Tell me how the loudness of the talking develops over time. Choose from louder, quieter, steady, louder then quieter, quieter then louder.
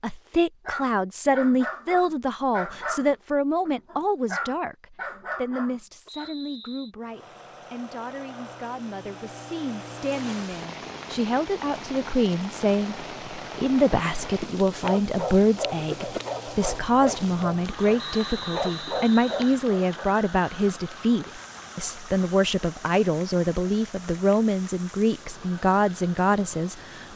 quieter then louder.